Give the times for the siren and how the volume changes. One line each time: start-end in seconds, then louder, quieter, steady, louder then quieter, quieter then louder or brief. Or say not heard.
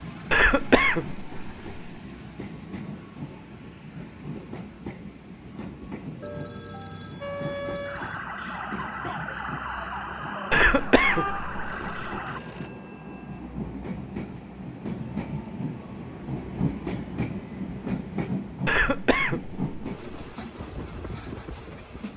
7.2-12.4 steady.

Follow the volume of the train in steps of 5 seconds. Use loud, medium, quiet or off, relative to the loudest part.
medium, medium, medium, loud, medium.